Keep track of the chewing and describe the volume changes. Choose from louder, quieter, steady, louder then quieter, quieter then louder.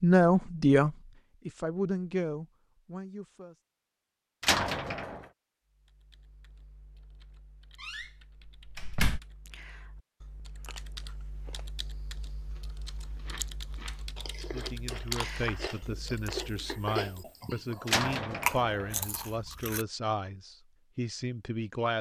louder.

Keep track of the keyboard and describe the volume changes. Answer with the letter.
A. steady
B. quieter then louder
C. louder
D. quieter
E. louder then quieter
C.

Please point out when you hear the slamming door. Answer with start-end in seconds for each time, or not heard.
4.4-5.2, 7.8-9.2, 17.9-19.1.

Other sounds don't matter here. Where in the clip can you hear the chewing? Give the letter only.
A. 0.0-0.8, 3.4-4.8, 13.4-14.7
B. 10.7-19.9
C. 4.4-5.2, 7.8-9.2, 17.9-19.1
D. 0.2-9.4
B.